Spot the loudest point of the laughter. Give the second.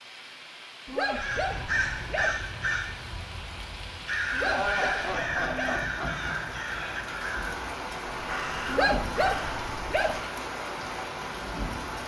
5 s.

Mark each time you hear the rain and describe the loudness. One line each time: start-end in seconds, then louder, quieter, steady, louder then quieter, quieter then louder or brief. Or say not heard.
0.0-12.0 louder.